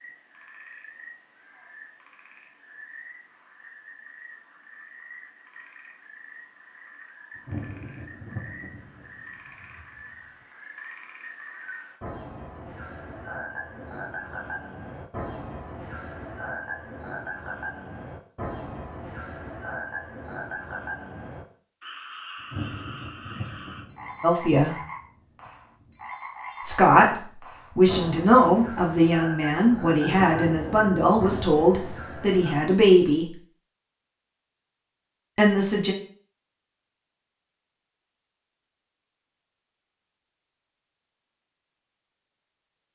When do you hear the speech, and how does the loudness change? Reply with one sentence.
The speech can be heard briefly from 24.2 to 24.8 s; from 26.6 to 33.3 s, at a steady volume; and briefly from 35.4 to 36.0 s.